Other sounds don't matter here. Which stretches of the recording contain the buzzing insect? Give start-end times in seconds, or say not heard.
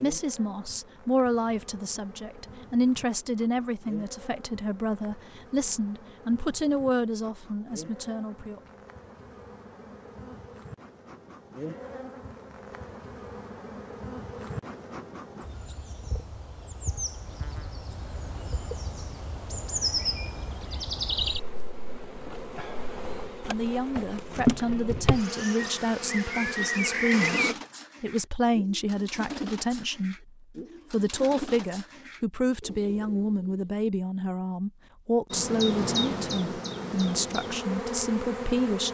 0.0-27.6, 35.3-38.8.